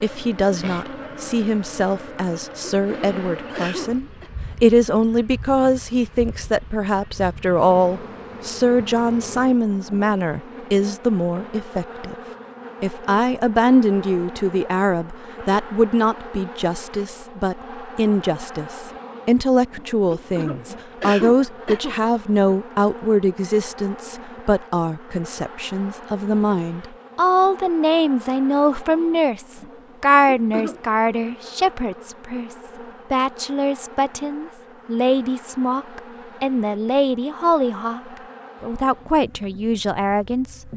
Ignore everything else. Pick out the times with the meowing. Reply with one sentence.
You can't hear the meowing here.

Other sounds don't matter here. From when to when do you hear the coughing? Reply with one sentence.
You can hear the coughing from 2.9 to 4.3 s, from 20.1 to 22.0 s and from 30.2 to 30.8 s.